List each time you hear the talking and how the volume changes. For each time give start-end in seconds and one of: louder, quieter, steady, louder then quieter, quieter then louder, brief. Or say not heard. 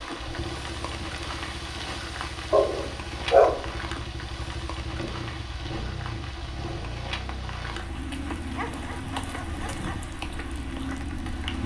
not heard.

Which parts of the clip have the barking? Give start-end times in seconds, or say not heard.
2.5-3.6, 8.6-10.1.